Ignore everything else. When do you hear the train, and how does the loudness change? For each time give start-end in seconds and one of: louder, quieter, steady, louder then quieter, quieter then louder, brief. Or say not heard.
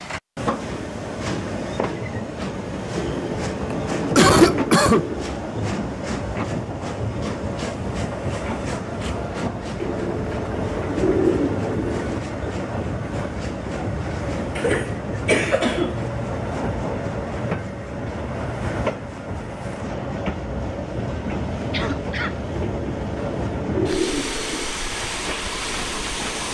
0.0-26.4 steady.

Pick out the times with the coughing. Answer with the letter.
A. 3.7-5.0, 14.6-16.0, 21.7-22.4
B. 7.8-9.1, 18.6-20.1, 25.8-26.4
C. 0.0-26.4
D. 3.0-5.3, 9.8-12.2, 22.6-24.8
A.